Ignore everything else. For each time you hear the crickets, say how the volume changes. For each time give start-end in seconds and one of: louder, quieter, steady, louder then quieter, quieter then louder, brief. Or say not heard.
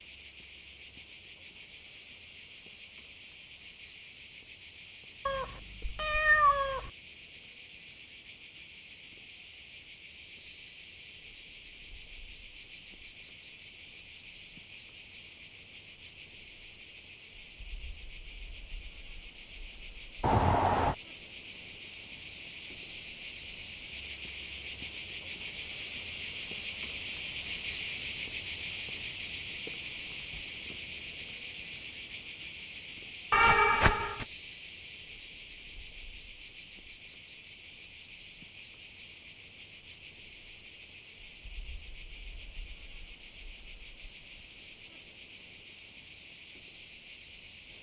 0.0-47.7 louder then quieter.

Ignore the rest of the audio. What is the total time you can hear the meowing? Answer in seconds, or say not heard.
3 s.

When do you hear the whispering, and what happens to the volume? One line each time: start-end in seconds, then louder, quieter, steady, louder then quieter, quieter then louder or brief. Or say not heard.
not heard.